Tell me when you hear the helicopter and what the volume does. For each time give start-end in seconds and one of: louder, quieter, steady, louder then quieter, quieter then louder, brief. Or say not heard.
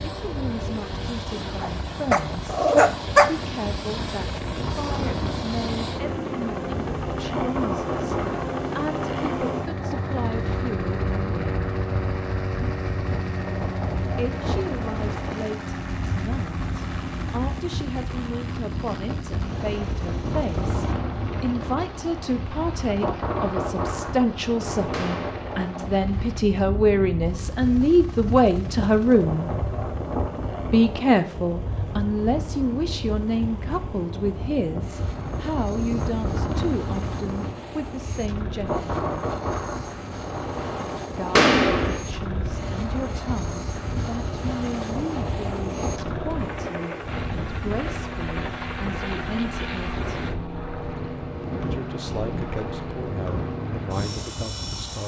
0.0-55.0 quieter then louder.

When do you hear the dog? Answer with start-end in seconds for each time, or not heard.
1.4-3.2.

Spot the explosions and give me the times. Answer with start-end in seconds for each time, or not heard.
24.9-25.6, 41.4-42.0.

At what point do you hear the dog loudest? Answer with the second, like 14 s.
3 s.